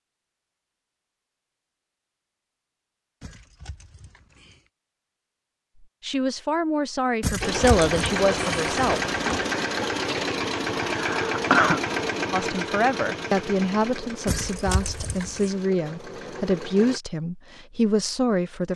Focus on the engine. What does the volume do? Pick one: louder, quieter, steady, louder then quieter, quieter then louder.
quieter.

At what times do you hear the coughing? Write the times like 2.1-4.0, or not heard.
10.8-11.8.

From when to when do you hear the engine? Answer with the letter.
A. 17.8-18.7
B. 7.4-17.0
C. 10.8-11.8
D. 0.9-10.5
B.